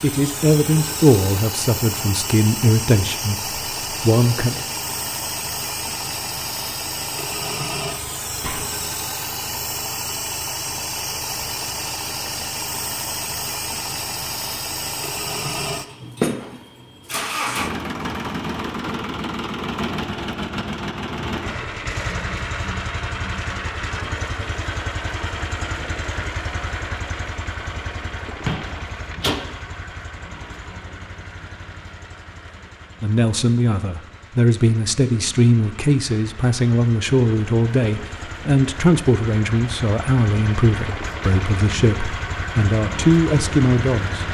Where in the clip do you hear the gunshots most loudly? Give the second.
29 s.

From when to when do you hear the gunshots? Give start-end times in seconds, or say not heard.
8.4-8.8, 28.4-29.4.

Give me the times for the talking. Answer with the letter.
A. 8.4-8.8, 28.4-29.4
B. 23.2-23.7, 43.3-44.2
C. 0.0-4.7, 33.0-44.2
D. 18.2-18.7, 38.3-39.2
C.